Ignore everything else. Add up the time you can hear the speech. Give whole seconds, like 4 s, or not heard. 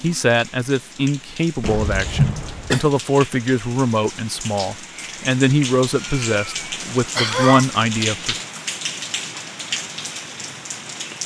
8 s.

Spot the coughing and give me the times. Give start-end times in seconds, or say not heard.
1.6-2.9, 6.0-7.7.